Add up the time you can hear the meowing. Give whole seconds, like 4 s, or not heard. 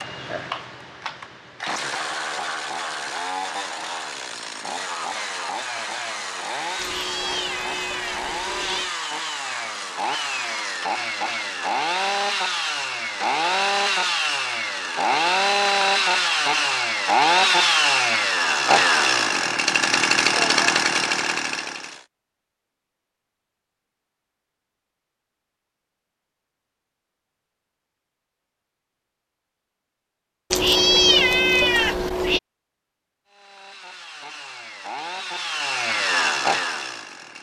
4 s.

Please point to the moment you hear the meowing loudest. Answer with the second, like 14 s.
31 s.